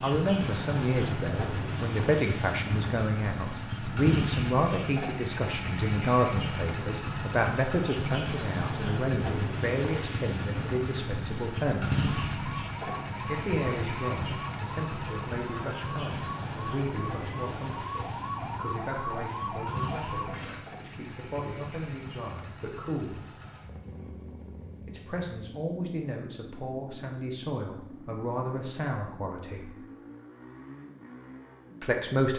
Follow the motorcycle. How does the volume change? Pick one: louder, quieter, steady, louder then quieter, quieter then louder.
quieter.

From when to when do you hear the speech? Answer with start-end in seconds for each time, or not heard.
0.0-12.1, 13.2-23.2, 24.9-29.8, 31.8-32.3.